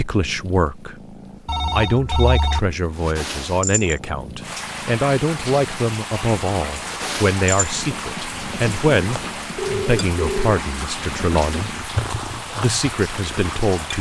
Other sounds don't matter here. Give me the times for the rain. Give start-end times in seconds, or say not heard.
4.4-13.9.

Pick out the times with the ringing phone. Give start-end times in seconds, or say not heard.
1.4-2.6, 9.2-10.4.